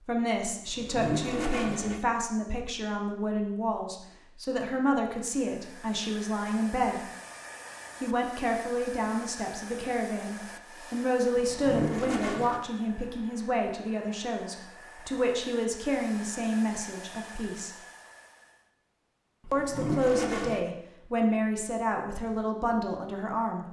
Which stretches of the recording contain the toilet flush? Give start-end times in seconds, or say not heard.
0.7-2.0, 11.3-12.6, 19.4-20.6.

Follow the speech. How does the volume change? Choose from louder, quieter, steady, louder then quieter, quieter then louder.
steady.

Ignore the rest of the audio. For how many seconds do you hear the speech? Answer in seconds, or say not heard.
21 s.